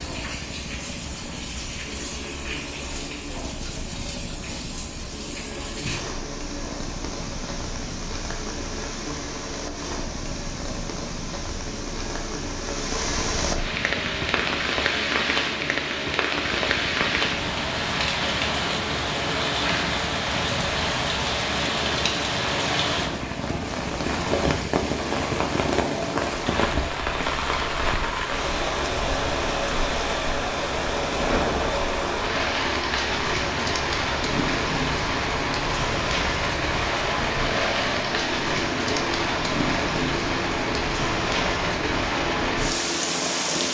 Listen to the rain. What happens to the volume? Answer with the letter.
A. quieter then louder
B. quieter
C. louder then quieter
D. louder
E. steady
D.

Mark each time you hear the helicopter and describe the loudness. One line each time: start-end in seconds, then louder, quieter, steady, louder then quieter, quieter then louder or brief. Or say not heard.
0.0-43.6 louder.